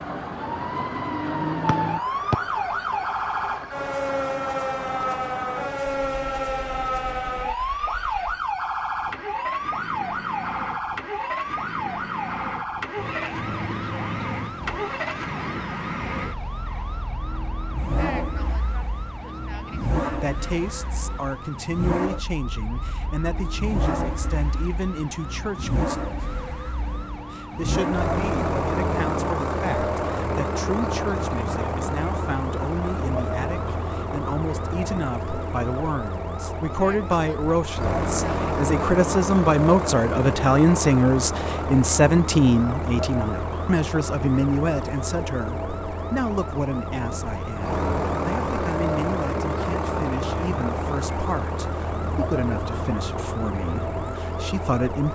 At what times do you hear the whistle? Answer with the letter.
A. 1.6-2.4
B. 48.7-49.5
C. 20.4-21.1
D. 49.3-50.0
A.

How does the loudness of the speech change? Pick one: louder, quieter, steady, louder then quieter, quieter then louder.
louder then quieter.